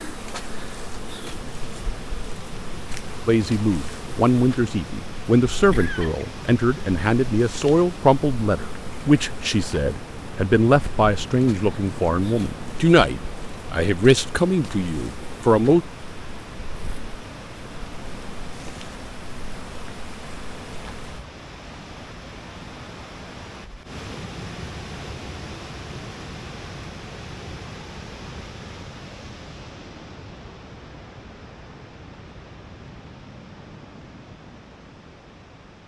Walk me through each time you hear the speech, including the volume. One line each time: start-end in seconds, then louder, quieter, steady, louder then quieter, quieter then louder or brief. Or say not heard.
3.2-15.8 steady.